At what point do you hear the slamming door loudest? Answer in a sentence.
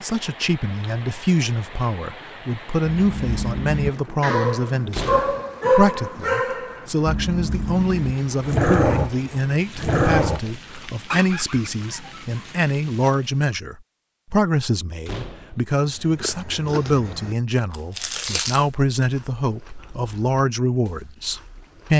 The loudest moment of the slamming door is at 5 seconds.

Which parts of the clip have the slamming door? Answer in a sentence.
The slamming door can be heard from 4.9 to 5.5 s and from 15.1 to 15.6 s.